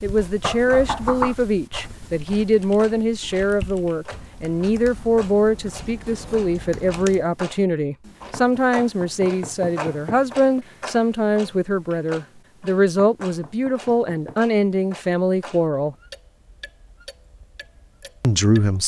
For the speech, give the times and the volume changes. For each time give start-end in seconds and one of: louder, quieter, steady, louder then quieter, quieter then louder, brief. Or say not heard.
0.0-15.9 steady
18.2-18.8 brief.